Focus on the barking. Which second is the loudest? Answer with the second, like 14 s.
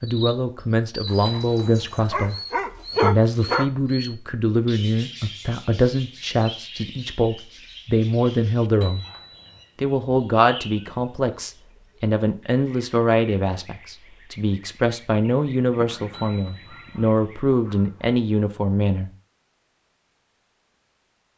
3 s.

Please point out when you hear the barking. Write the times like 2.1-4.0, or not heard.
1.1-3.7, 15.8-18.1.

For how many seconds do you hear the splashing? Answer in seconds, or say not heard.
not heard.